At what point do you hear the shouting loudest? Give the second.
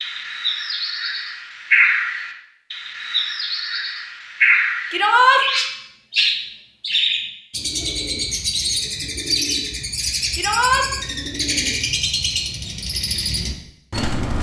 5 s.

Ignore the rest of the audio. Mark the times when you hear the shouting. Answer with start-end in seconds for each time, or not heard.
4.9-5.5, 10.3-10.8.